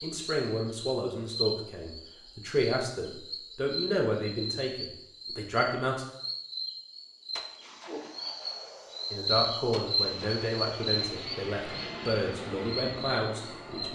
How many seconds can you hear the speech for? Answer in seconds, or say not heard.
11 s.